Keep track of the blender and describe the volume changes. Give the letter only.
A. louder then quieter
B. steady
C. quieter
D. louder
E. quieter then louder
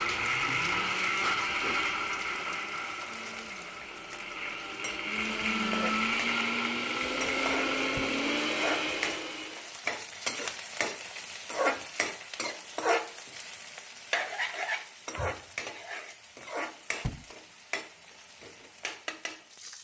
E.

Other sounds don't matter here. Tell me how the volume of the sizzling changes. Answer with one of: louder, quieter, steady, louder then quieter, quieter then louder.
louder then quieter.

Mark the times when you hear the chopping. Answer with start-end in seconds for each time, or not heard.
not heard.